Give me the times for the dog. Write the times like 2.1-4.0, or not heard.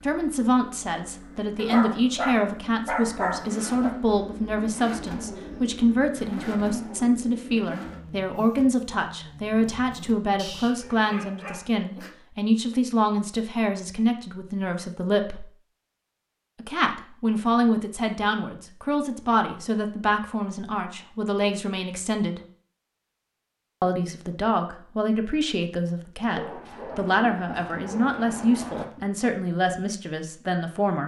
1.6-4.0, 10.3-12.2, 26.4-29.1.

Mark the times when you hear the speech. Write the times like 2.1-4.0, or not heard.
0.0-15.4, 16.6-22.4, 23.8-31.0.